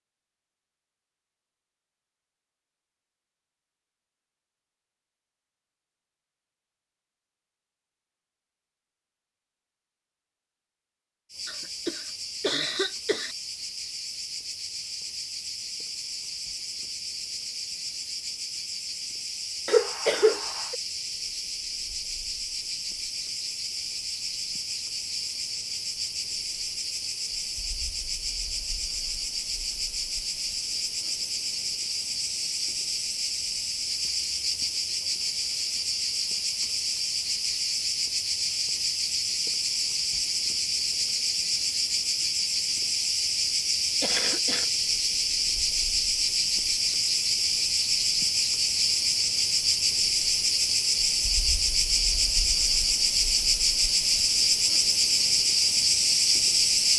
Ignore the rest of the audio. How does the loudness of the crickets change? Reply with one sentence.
The loudness of the crickets goes up.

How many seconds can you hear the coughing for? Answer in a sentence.
You can hear the coughing for 4 seconds altogether.